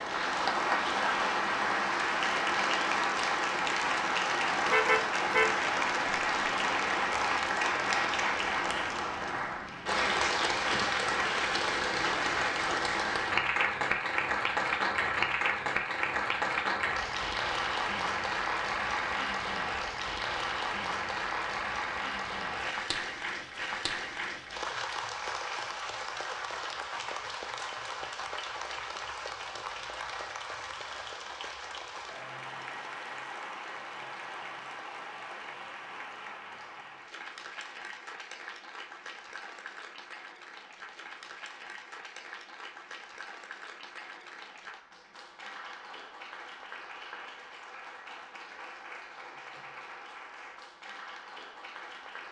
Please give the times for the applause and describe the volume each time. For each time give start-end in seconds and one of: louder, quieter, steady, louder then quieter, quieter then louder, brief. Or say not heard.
0.0-52.2 quieter.